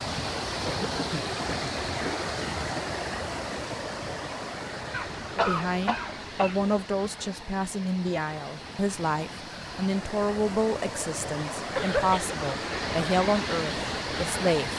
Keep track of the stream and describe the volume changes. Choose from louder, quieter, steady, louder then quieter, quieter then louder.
quieter then louder.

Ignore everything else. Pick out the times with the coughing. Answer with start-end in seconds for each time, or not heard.
0.7-2.9, 4.9-6.7, 11.8-12.3.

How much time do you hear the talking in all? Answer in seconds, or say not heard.
9 s.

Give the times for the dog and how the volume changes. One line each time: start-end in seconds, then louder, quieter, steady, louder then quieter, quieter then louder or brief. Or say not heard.
not heard.